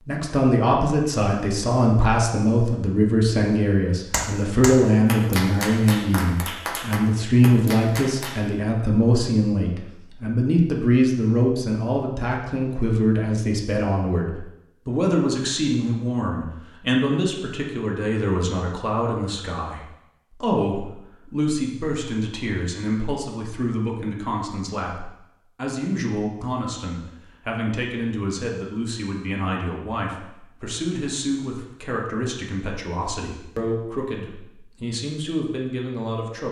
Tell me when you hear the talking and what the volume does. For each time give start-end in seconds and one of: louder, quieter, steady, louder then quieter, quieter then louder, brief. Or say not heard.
0.1-36.4 quieter.